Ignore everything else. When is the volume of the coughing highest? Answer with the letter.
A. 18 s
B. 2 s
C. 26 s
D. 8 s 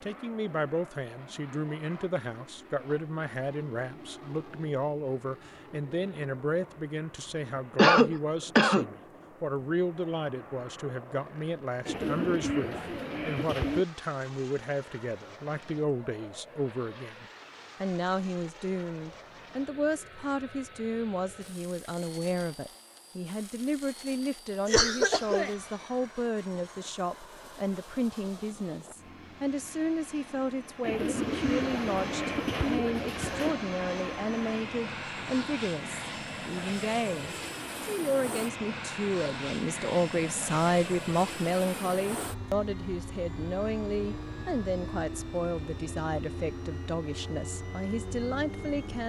D.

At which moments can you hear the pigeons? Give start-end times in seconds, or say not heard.
11.8-13.8, 30.8-33.6.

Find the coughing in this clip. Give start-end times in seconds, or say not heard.
7.8-8.9, 24.6-25.5.